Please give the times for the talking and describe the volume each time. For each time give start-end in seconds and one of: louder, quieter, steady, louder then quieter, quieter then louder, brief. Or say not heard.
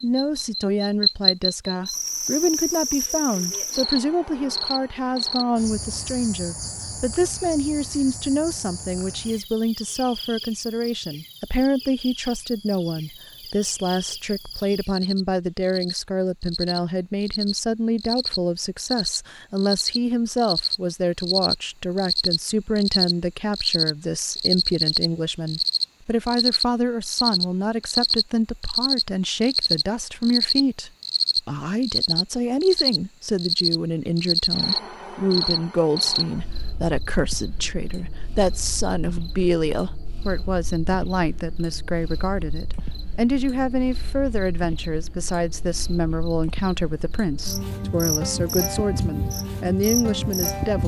0.0-50.8 steady.